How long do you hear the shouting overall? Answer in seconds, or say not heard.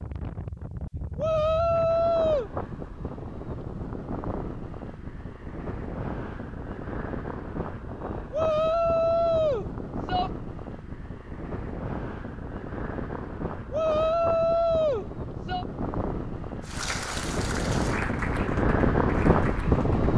5 s.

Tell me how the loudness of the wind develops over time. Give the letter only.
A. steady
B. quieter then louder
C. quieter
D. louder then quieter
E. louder
E.